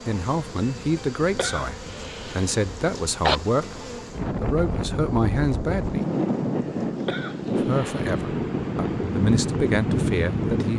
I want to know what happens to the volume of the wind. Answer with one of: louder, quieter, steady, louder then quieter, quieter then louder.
louder.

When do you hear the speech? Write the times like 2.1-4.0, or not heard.
0.1-6.0, 7.5-10.7.